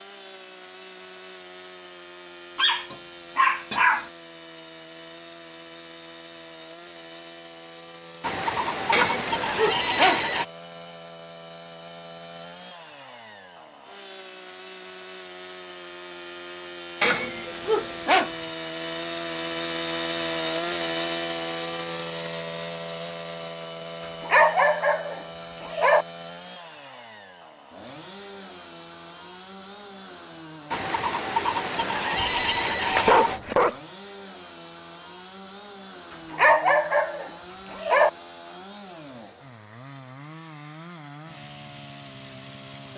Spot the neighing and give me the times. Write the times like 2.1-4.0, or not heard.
8.2-10.4, 30.7-33.4.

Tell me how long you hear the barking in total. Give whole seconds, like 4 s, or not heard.
9 s.